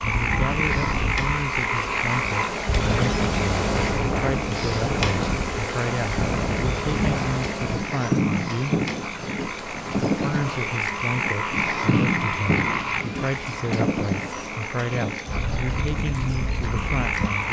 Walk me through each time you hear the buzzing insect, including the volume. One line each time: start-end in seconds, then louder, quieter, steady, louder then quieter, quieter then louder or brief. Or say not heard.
0.0-17.4 quieter.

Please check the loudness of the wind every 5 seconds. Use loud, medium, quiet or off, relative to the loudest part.
loud, loud, loud, medium.